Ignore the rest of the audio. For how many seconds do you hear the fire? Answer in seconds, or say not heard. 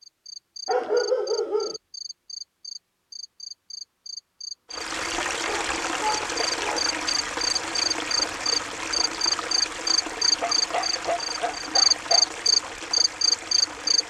not heard.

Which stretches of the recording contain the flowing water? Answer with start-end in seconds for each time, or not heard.
4.7-14.0.